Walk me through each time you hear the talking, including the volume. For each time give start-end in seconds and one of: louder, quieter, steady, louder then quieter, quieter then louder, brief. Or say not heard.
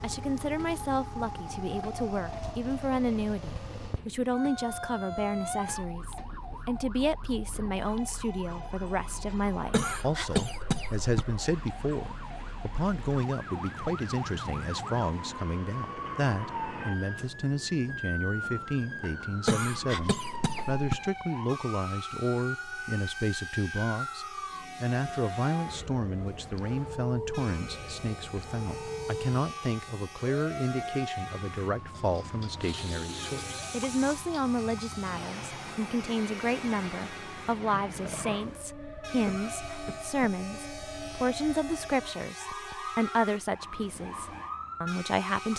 0.0-45.5 steady.